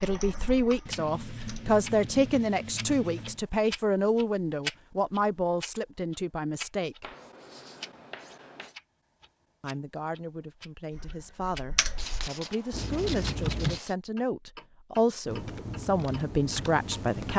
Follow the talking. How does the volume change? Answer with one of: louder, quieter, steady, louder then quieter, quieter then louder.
quieter then louder.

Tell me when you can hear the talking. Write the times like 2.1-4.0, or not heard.
0.0-7.1, 9.6-17.3.